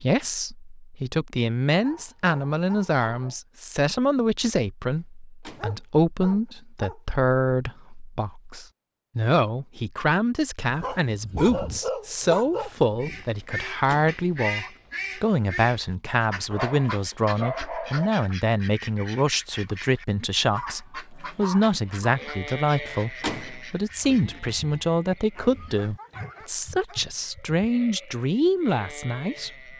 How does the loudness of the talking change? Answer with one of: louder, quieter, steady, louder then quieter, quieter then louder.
steady.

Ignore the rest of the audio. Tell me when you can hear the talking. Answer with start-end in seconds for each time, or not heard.
0.0-29.7.